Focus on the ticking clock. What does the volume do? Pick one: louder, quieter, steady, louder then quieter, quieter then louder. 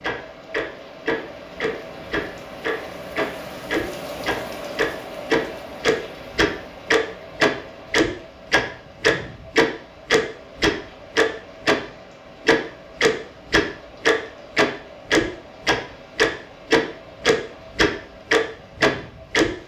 louder.